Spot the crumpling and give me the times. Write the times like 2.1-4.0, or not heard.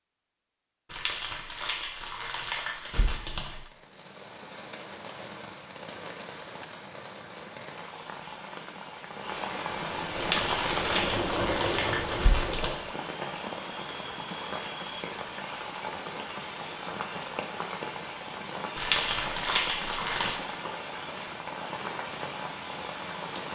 0.9-3.7, 10.2-12.8, 18.8-20.4.